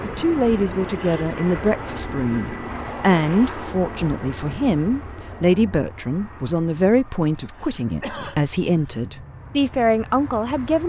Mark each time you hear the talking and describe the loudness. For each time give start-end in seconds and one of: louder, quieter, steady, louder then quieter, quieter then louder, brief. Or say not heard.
0.0-10.8 steady.